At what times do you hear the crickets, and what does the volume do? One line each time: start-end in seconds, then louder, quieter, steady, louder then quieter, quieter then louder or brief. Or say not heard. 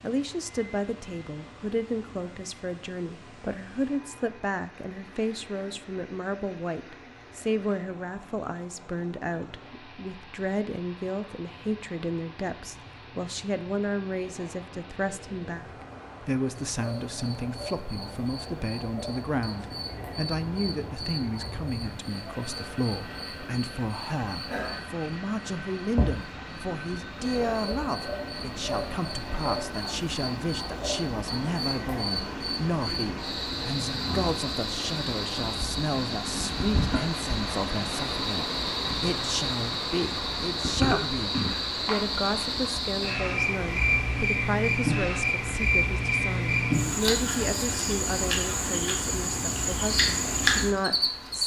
16.8-51.4 louder.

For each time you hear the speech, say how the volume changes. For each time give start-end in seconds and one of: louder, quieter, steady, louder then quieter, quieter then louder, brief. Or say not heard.
0.0-51.4 steady.